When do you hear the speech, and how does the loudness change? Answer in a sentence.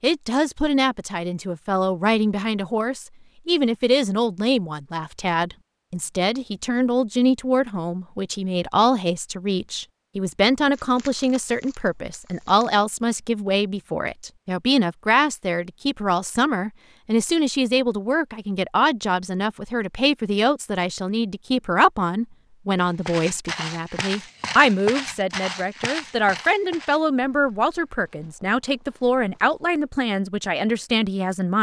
You can hear the speech from 0.0 to 31.5 s, at a steady volume.